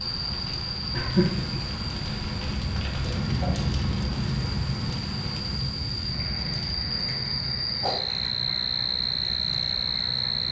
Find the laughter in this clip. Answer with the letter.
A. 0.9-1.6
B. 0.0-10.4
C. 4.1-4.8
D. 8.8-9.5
A.